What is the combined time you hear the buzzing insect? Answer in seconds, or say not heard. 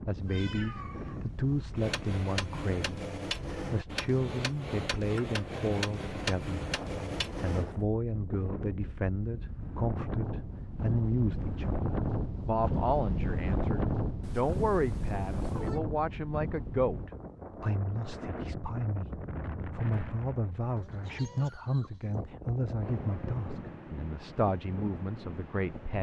not heard.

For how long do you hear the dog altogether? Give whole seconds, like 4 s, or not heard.
not heard.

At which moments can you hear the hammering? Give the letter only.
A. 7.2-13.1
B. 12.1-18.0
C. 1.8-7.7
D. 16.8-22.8
C.